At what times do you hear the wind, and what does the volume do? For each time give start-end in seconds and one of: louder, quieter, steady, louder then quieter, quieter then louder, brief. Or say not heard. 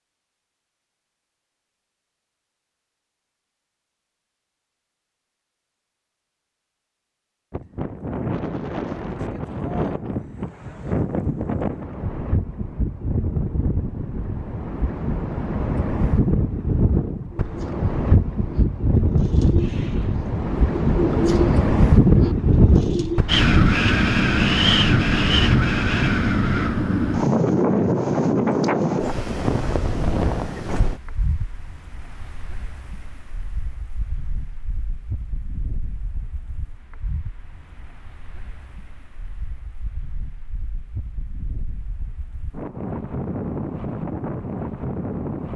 7.5-45.5 louder then quieter.